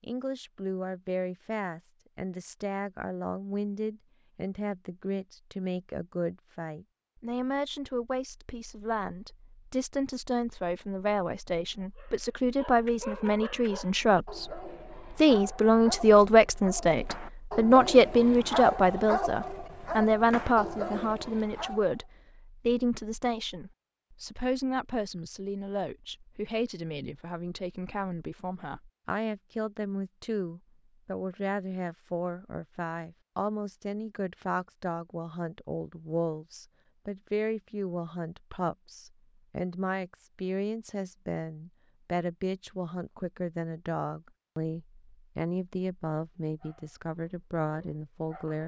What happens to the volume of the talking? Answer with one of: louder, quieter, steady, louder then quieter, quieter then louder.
louder then quieter.